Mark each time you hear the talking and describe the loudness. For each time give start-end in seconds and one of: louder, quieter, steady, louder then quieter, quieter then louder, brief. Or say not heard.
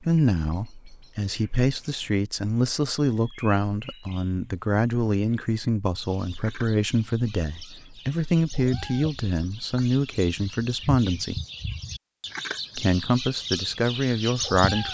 0.0-11.4 steady
12.8-14.8 brief.